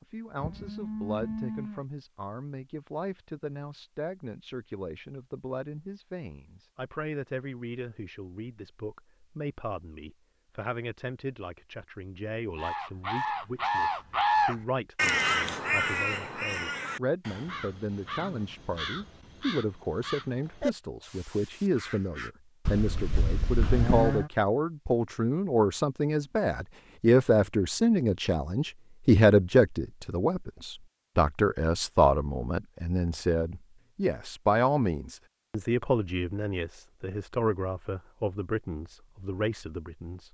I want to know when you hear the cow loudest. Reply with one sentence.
The loudest moment of the cow is at 24 seconds.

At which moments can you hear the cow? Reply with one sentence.
You can hear the cow from 0.4 to 1.9 s and from 22.6 to 24.3 s.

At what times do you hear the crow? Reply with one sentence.
You can hear the crow from 12.6 to 22.3 s.